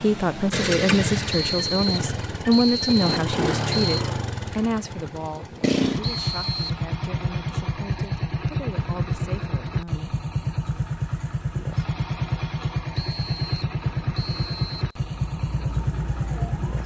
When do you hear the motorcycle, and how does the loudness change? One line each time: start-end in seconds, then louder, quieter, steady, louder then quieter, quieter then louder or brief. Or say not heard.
0.0-16.8 steady.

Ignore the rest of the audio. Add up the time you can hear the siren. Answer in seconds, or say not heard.
2 s.